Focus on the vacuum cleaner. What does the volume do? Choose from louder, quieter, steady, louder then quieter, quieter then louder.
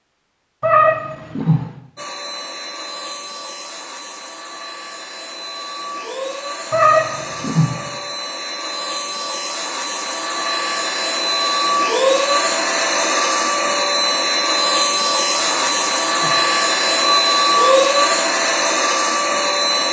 louder.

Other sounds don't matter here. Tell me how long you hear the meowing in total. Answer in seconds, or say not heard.
4 s.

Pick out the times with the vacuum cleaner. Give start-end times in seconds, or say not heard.
1.9-19.8.